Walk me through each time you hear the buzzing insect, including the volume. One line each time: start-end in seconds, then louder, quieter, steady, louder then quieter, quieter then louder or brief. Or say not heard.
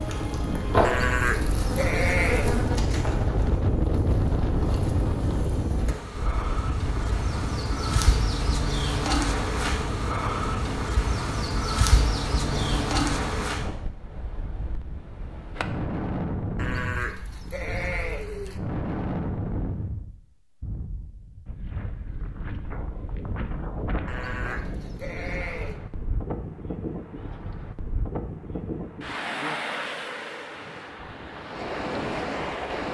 0.0-13.7 quieter then louder.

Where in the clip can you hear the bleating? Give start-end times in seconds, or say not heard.
0.8-2.7, 16.6-18.6, 24.1-25.8.